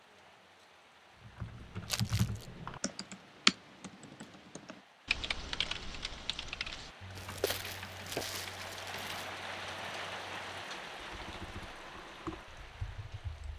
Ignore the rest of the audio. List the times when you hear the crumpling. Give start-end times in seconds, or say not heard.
1.9-2.5, 7.2-9.3.